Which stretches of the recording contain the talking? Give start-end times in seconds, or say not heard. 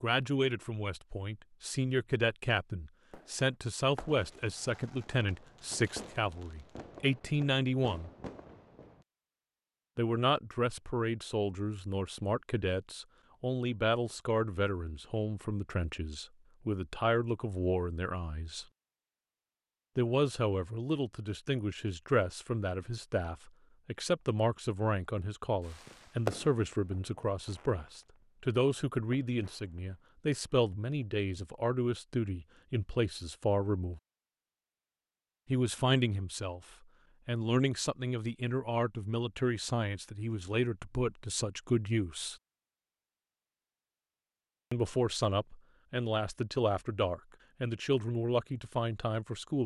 0.0-8.1, 9.9-18.6, 19.9-34.0, 35.5-36.6, 37.2-42.4, 44.7-49.6.